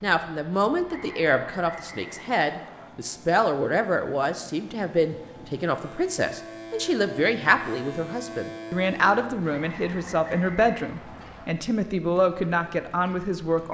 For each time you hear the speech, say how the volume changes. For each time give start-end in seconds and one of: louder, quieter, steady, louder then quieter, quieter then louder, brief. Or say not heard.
0.0-13.6 steady.